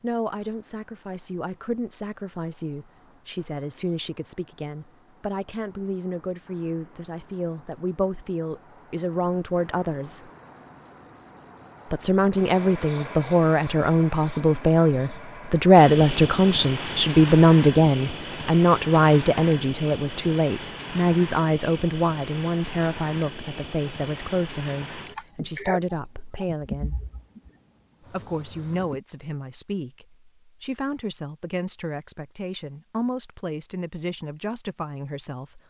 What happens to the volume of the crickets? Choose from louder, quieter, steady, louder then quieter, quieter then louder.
louder then quieter.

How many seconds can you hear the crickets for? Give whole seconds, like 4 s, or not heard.
29 s.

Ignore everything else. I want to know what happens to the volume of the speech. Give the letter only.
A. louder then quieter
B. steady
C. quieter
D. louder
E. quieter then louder
A.